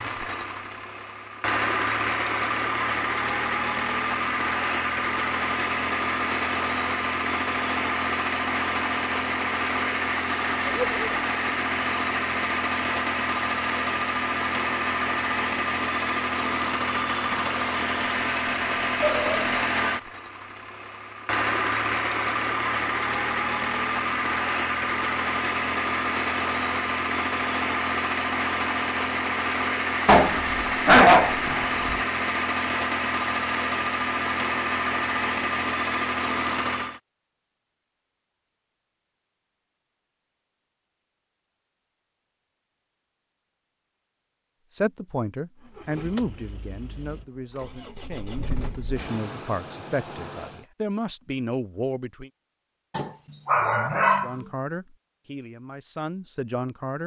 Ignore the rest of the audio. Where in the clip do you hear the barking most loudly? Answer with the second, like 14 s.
31 s.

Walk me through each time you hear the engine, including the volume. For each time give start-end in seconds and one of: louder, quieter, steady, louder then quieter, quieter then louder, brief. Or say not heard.
0.0-37.0 steady
45.6-50.6 quieter then louder.